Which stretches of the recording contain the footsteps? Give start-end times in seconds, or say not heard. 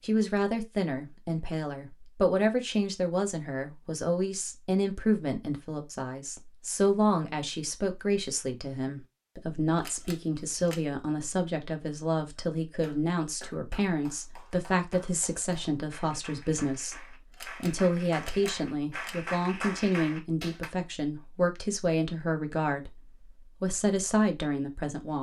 not heard.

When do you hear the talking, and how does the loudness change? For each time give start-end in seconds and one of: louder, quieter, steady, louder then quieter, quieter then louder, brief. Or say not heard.
0.0-25.1 steady.